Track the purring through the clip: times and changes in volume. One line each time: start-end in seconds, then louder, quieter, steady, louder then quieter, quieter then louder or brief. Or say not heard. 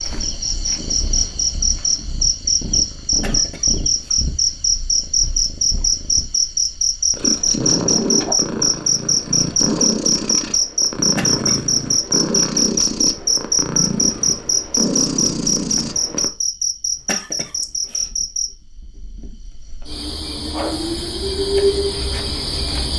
0.1-16.3 louder.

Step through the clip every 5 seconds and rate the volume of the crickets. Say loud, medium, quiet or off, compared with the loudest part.
loud, loud, loud, medium, loud.